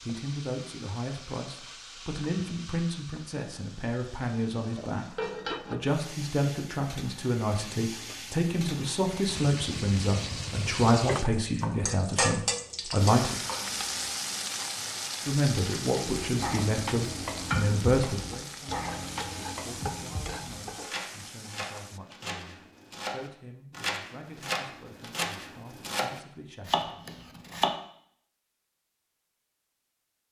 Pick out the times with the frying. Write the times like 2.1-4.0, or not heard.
0.0-22.0.